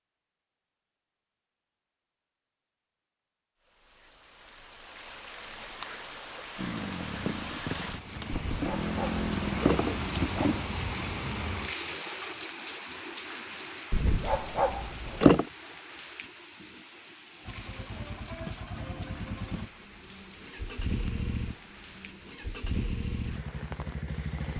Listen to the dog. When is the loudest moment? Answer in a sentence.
The loudest moment of the dog is at 15 seconds.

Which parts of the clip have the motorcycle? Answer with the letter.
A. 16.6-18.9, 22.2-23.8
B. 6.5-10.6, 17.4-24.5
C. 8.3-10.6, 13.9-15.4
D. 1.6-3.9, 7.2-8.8
B.